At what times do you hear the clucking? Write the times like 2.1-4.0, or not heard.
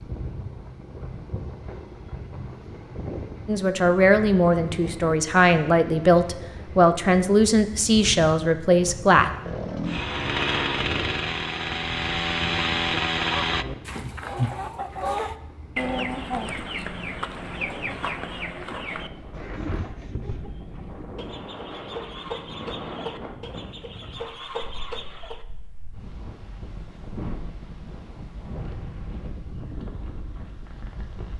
13.4-25.4.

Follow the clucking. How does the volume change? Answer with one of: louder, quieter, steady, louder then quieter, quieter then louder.
quieter.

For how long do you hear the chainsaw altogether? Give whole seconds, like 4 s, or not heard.
4 s.